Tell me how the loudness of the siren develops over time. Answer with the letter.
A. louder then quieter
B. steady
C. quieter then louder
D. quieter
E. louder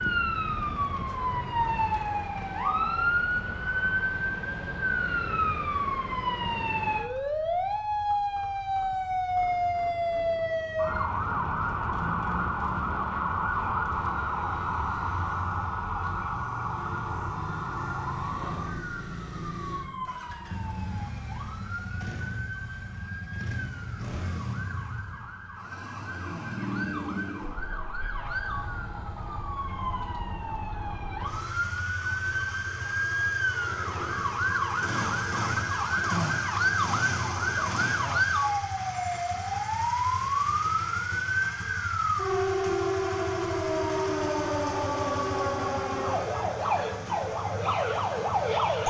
C.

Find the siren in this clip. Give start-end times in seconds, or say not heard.
0.0-48.8.